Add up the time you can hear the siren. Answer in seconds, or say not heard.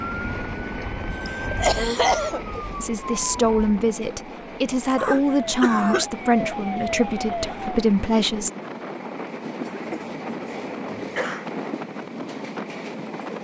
8 s.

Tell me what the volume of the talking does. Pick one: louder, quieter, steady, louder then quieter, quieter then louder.
steady.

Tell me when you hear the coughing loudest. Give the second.
2 s.